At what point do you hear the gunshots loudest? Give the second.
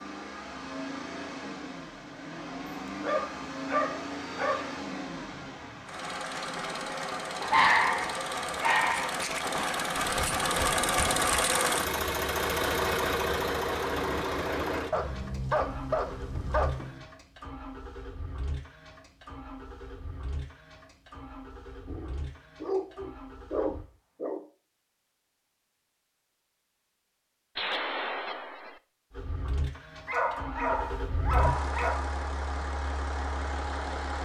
28 s.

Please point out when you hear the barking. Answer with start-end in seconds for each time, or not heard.
2.6-4.7, 7.4-9.2, 14.9-17.1, 21.9-24.4, 30.1-32.0.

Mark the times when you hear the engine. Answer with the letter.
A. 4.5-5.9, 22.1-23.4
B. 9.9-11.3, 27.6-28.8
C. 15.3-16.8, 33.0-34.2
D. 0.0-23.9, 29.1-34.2
D.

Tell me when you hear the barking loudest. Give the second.
8 s.